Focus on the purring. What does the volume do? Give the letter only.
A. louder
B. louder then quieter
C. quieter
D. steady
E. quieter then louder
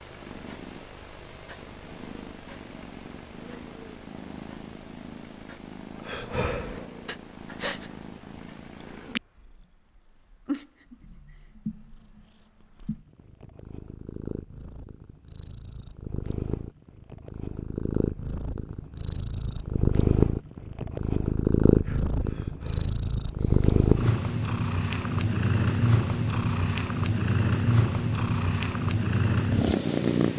A.